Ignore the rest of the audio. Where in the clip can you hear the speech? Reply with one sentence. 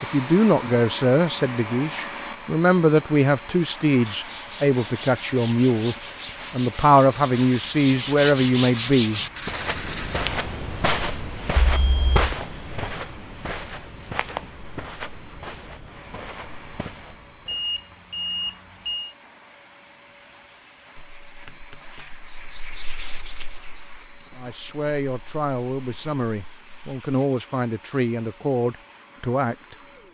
You can hear the speech from 0.0 to 9.2 s and from 24.4 to 29.8 s.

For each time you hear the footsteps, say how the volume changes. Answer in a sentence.
The footsteps can be heard from 9.3 to 17.6 s, getting quieter.